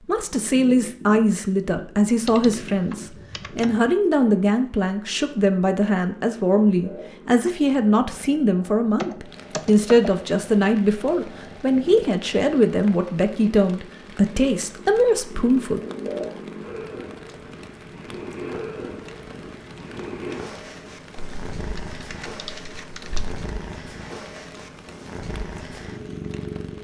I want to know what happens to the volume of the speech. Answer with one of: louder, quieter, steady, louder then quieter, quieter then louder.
steady.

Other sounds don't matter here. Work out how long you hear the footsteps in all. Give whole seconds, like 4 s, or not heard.
not heard.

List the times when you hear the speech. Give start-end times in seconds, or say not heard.
0.1-15.8.